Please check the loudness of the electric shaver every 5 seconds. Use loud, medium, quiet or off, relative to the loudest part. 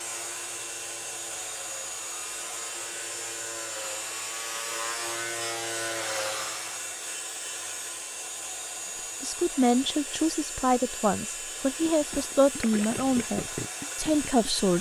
medium, loud, off.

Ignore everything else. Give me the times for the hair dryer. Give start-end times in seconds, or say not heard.
0.0-14.7.